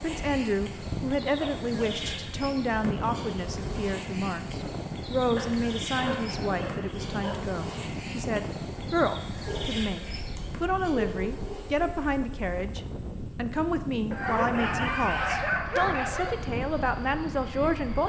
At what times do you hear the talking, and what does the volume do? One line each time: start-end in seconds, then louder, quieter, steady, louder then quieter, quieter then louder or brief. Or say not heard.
0.0-18.0 steady.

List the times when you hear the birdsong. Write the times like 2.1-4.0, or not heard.
not heard.